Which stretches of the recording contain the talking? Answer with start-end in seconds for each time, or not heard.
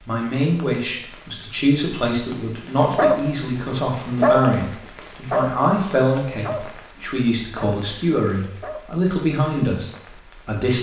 0.1-10.7.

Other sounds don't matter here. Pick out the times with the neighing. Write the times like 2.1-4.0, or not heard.
not heard.